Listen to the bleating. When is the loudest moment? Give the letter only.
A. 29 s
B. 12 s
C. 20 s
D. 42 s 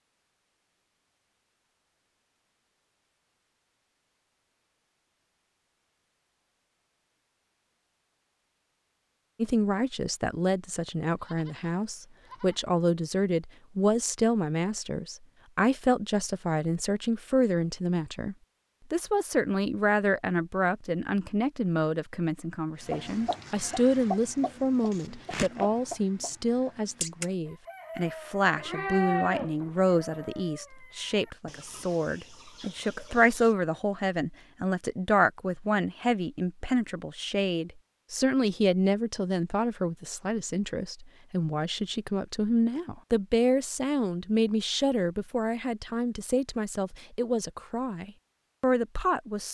A.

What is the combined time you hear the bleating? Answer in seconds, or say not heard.
3 s.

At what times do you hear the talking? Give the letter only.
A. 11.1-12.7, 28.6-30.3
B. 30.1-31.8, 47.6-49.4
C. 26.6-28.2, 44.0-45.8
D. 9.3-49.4
D.